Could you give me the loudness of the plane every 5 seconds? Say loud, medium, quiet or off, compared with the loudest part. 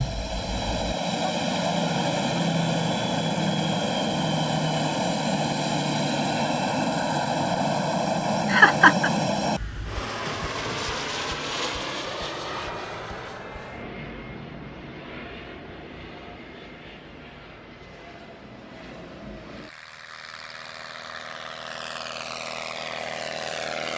loud, loud, medium, quiet, medium.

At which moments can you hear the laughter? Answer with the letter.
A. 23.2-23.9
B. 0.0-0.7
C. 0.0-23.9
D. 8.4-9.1
D.